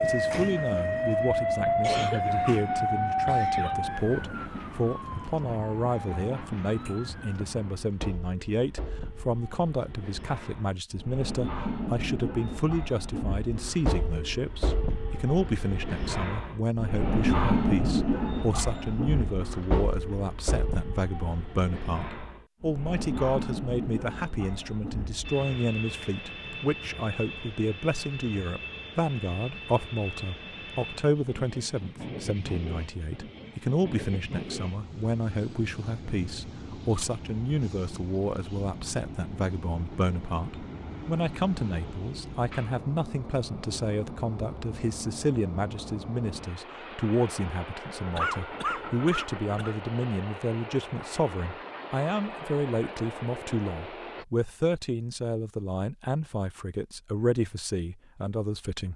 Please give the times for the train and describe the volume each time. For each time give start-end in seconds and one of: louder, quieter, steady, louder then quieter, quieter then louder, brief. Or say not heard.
0.0-54.2 louder then quieter.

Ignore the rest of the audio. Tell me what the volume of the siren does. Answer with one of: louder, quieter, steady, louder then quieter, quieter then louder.
quieter.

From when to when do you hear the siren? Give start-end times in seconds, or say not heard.
0.0-7.3.